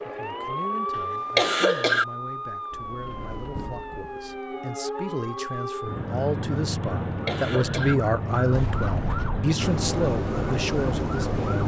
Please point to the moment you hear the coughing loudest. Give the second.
2 s.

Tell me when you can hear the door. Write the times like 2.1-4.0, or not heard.
3.0-4.0, 8.5-9.5.